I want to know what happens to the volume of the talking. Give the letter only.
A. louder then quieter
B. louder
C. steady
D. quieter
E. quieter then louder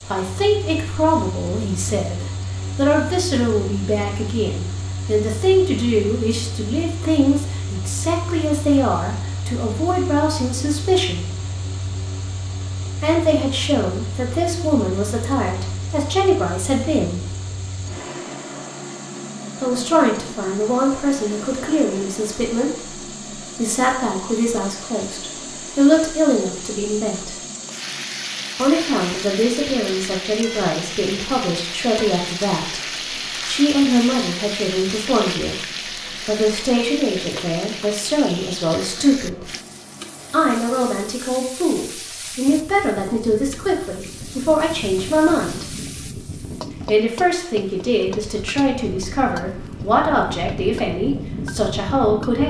C.